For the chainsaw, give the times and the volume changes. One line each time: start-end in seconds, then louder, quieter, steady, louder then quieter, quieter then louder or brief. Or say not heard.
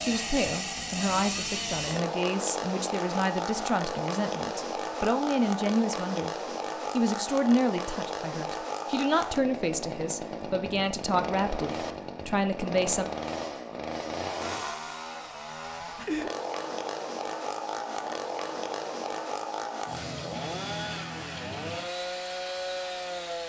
0.0-23.4 steady.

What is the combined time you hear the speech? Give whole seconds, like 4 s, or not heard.
13 s.